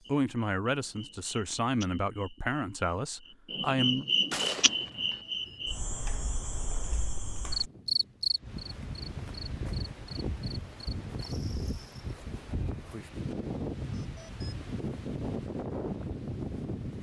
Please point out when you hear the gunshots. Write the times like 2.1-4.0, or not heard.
4.3-5.2.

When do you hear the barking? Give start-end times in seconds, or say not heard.
not heard.